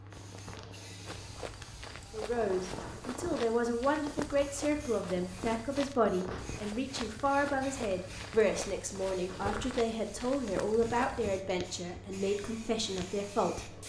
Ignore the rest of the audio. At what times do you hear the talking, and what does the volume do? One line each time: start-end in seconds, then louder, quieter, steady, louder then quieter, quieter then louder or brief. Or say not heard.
2.1-13.8 steady.